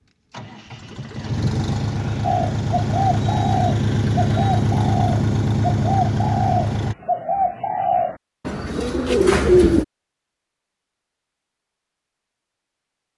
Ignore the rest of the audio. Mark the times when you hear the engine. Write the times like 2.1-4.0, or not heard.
0.1-7.0.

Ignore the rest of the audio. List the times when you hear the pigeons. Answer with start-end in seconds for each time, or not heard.
2.2-9.8.